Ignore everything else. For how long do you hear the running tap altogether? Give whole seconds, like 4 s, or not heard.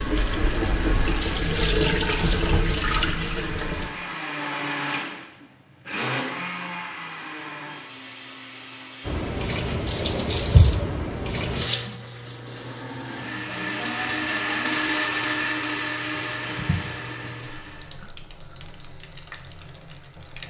15 s.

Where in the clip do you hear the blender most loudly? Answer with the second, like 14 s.
15 s.